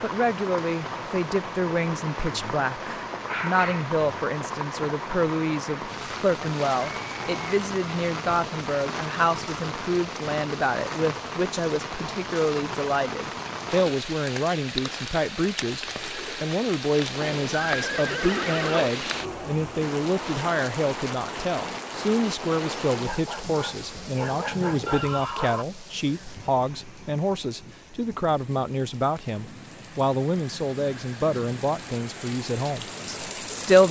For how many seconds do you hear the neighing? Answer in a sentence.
You can hear the neighing for 3 seconds altogether.